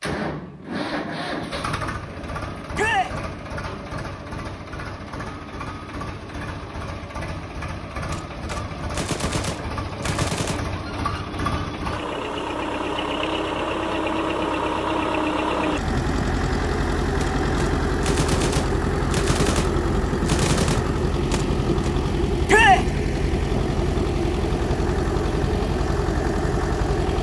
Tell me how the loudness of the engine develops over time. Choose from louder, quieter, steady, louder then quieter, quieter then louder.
louder.